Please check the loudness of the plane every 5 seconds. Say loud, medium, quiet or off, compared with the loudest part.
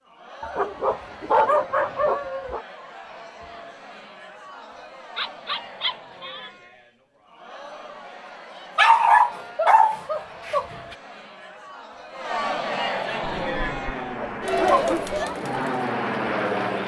off, off, medium, loud.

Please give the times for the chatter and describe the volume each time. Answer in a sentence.
You can hear the chatter from 0.0 to 16.8 s, getting louder.